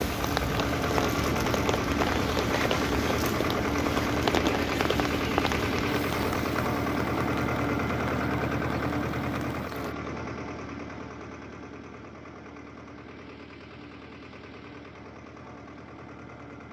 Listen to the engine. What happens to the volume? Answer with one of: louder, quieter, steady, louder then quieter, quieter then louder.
quieter.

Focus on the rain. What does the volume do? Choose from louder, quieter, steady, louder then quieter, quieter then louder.
quieter.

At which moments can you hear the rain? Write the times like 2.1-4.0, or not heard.
0.0-9.9.